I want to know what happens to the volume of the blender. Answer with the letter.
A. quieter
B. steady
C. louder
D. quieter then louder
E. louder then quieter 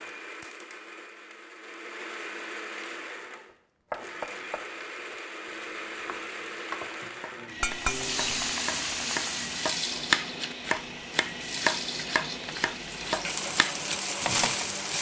B.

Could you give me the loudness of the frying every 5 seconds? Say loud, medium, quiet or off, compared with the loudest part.
off, loud, loud.